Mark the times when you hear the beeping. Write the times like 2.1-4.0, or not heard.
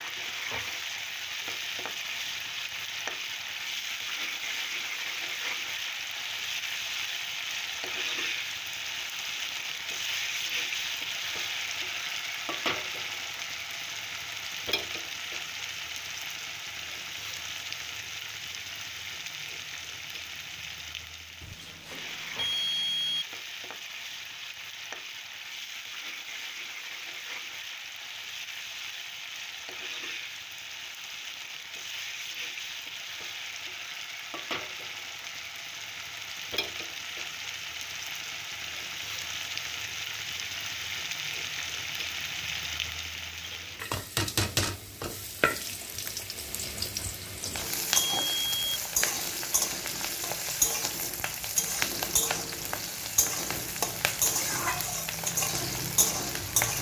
21.4-23.2, 47.0-48.8.